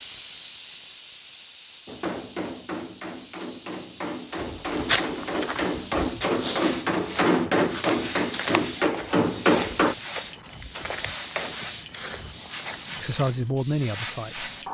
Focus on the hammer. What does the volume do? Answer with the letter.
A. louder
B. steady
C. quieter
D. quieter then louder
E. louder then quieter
A.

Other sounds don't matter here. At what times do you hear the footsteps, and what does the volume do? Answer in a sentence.
The footsteps can be heard from 4.3 to 13.5 s, getting quieter.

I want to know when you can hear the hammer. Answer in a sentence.
You can hear the hammer from 1.9 to 9.9 s.